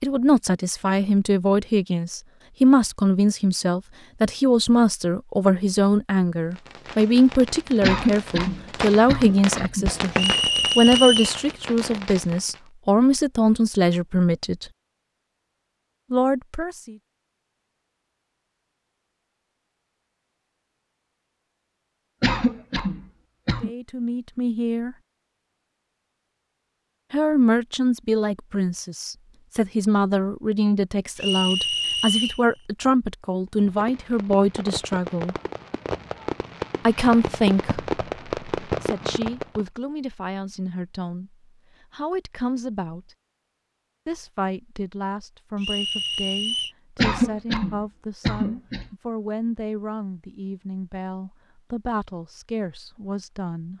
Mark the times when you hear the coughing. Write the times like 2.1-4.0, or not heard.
7.8-9.8, 22.2-23.7, 47.0-49.0.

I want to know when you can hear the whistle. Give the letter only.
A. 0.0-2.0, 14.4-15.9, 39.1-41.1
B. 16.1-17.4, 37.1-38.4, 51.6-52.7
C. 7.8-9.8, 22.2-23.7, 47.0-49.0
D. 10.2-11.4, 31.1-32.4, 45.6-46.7
D.